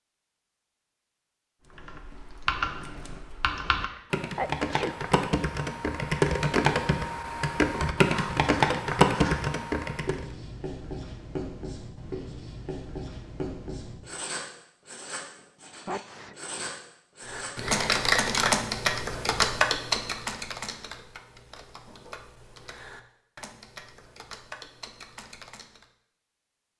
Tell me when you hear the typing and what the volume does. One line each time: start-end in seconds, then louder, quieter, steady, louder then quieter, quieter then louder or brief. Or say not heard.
1.6-10.2 louder
17.2-25.9 quieter.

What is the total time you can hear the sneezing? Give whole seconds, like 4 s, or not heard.
2 s.